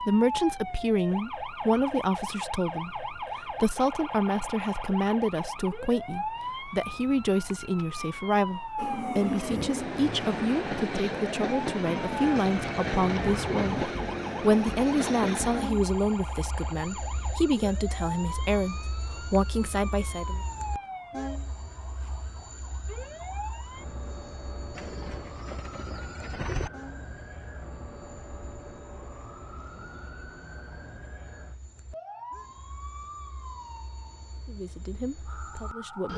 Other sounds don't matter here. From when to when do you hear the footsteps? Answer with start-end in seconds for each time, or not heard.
not heard.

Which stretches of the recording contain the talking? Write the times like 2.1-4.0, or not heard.
0.0-20.4, 34.5-36.1.